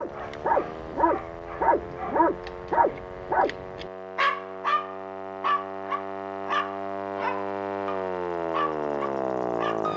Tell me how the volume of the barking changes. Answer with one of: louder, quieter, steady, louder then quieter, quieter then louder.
quieter.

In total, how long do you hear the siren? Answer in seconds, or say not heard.
10 s.